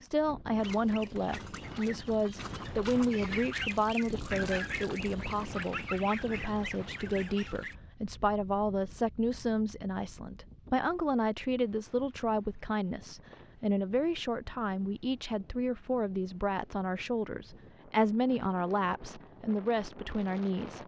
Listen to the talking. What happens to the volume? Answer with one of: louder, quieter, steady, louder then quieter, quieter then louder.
steady.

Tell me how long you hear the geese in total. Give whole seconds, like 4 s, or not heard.
7 s.